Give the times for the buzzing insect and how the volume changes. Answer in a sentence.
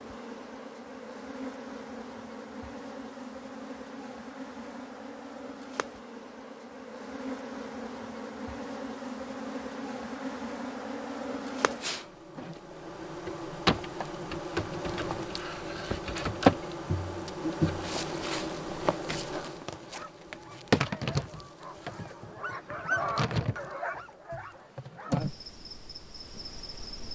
You can hear the buzzing insect from 0.0 to 27.0 s, getting louder then quieter.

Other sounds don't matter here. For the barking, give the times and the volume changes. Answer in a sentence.
The barking can be heard from 19.9 to 25.3 s, getting louder then quieter.